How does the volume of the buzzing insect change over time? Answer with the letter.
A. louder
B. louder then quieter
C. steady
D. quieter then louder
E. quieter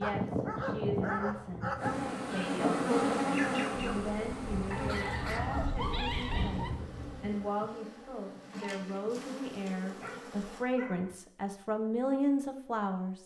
E.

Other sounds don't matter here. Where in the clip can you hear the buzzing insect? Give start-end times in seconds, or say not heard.
1.8-10.7.